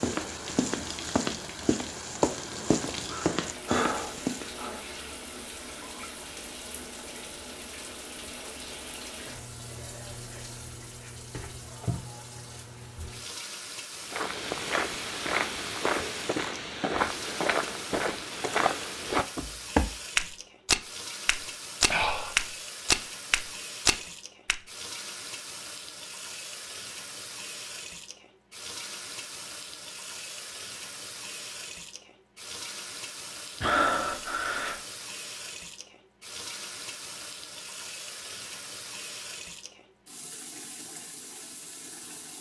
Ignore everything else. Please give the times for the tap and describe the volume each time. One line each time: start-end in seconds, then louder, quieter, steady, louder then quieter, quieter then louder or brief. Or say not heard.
0.0-42.3 steady.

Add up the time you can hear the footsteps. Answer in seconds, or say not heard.
15 s.